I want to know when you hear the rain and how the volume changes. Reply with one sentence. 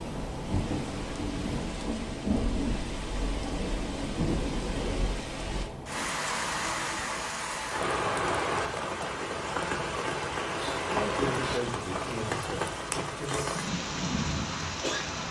The rain can be heard from 0.0 to 15.2 s, at a steady volume.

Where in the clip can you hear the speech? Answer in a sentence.
You can hear the speech from 10.9 to 13.7 s.